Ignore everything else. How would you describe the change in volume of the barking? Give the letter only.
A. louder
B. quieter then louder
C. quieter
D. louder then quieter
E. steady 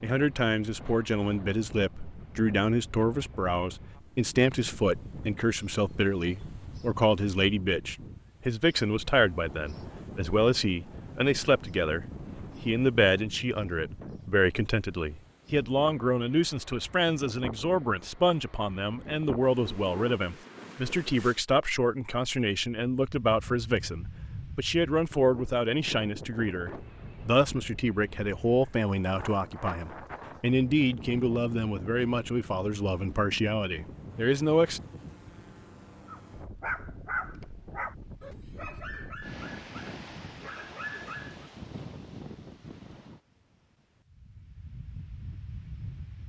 B.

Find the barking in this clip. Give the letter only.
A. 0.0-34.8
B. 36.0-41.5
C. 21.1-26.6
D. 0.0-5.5
B.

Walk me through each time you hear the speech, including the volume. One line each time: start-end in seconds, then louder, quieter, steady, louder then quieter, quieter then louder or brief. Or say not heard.
0.0-34.8 steady.